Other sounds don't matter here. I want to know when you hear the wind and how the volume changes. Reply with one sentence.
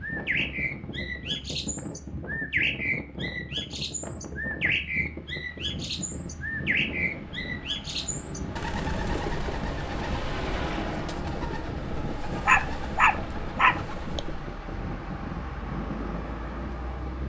You can hear the wind from 0.0 to 17.2 s, at a steady volume.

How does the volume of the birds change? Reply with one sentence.
The volume of the birds goes down.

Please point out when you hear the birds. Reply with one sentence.
The birds can be heard from 0.0 to 14.2 s.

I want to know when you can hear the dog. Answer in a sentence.
You can hear the dog from 12.4 to 14.2 s.